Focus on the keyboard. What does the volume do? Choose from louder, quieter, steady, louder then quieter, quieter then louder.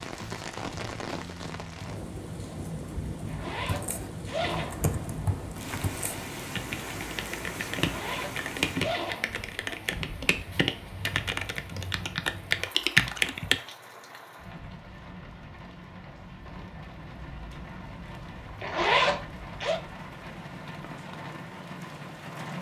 louder.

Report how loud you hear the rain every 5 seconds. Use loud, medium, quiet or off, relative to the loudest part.
loud, loud, medium, medium, loud.